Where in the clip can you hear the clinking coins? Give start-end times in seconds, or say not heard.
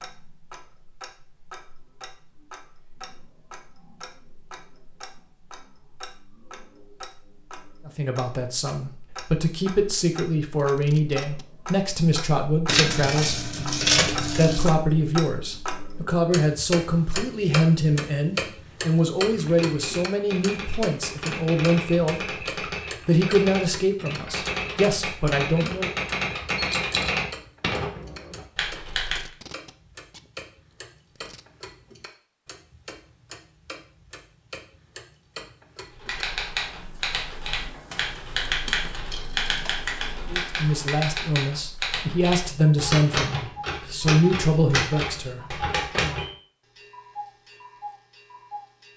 12.7-14.8, 26.7-27.1, 37.9-39.8.